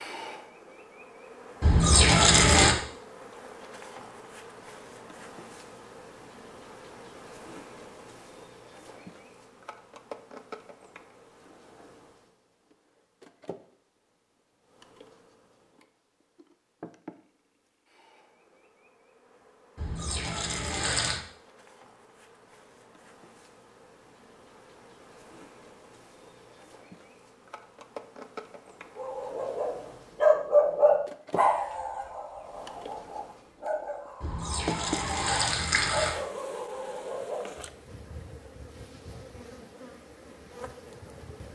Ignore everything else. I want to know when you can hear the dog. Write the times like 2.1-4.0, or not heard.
28.9-37.6.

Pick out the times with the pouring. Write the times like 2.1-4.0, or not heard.
1.6-2.8, 19.8-21.2, 34.2-36.1.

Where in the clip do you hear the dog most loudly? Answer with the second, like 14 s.
30 s.